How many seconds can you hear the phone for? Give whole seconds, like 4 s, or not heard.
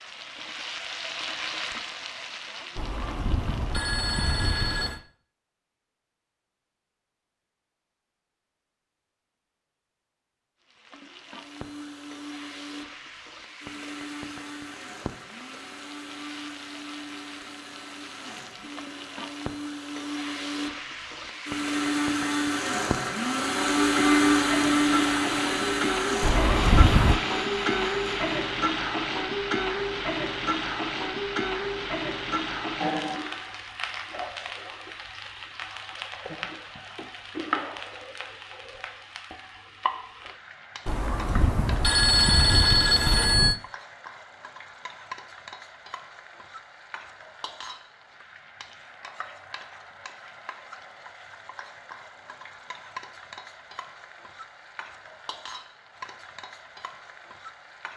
6 s.